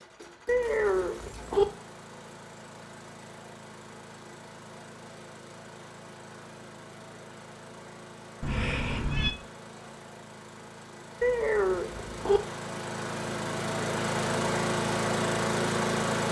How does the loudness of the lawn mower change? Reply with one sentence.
The loudness of the lawn mower goes up.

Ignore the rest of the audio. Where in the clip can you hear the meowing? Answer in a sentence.
The meowing can be heard from 0.5 to 1.6 s, from 8.4 to 9.3 s and from 11.2 to 12.4 s.